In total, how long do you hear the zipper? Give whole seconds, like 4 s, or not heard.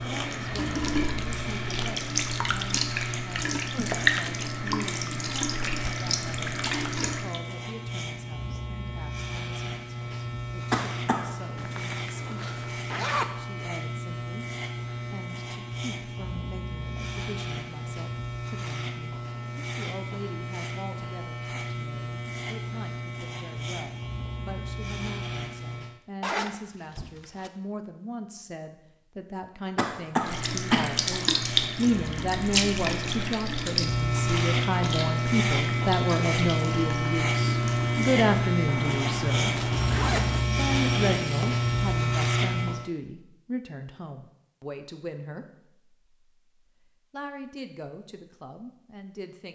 5 s.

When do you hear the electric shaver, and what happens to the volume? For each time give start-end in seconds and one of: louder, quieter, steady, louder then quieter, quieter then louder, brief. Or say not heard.
0.0-26.0 steady
30.1-42.9 louder.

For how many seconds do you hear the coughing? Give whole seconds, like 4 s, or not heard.
2 s.